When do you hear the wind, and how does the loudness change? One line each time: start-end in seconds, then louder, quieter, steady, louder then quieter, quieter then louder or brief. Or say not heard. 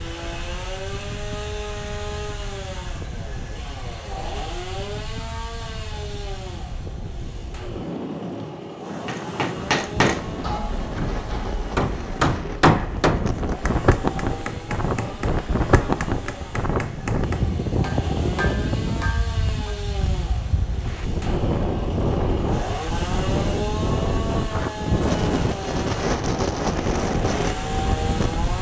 0.0-28.5 louder.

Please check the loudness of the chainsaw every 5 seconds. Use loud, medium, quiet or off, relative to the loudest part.
loud, medium, medium, medium, loud, loud.